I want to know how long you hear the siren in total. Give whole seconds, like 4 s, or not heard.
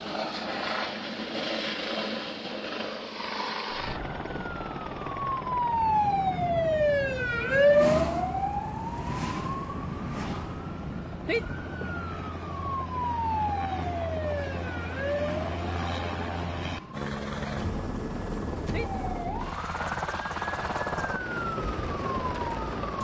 19 s.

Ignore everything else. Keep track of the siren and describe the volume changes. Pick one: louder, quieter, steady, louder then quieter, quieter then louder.
quieter.